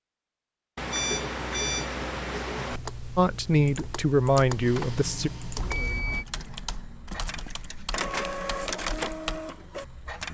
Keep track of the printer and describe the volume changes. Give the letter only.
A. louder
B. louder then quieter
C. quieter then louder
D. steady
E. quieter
C.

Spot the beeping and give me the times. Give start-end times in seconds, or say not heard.
0.8-2.8, 5.5-6.2.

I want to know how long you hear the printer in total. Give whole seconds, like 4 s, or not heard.
6 s.